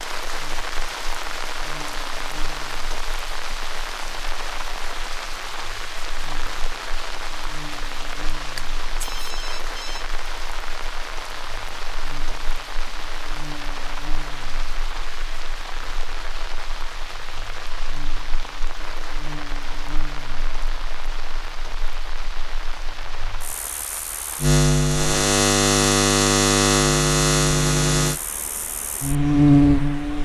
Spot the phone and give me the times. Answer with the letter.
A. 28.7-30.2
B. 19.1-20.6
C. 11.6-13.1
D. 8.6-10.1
D.